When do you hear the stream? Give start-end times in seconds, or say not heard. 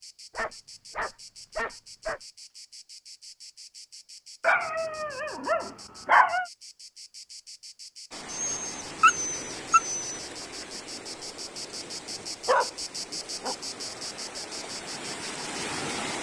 8.1-16.1.